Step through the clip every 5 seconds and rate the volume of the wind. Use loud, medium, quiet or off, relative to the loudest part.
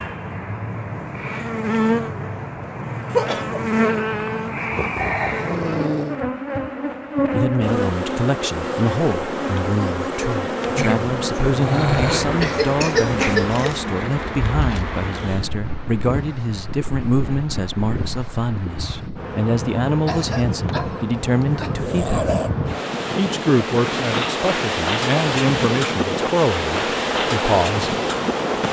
off, off, medium, medium, loud, loud.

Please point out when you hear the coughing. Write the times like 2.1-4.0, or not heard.
3.1-3.6, 12.4-13.8, 20.1-21.8.